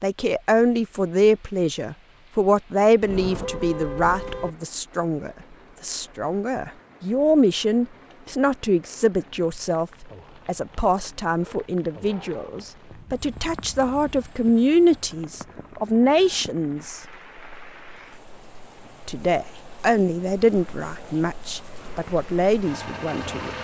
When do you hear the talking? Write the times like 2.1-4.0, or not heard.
0.0-17.0, 19.1-23.5.